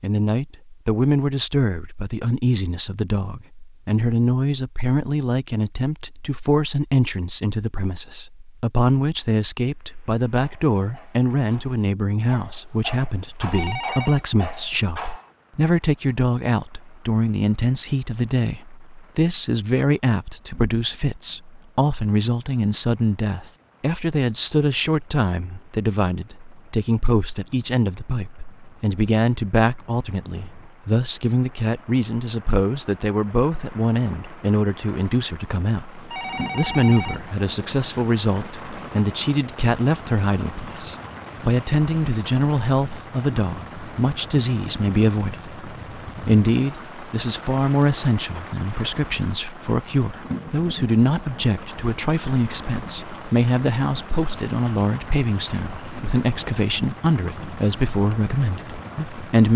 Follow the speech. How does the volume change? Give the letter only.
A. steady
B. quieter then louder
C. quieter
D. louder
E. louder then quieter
A.